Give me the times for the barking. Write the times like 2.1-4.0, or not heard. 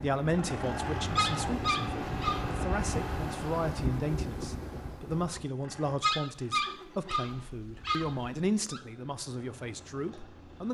1.1-2.5, 6.0-8.8.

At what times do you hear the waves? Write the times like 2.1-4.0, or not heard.
0.0-5.5.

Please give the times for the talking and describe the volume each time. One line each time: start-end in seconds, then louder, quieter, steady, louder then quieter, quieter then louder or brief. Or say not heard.
0.0-10.6 steady.